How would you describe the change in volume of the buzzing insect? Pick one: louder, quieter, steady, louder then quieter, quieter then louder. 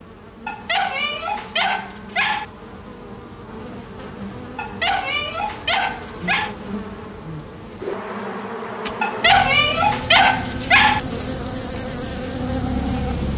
louder.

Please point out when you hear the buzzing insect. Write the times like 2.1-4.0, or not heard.
0.0-13.3.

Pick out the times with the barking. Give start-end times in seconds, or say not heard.
0.5-2.5, 4.5-6.5, 9.0-11.0.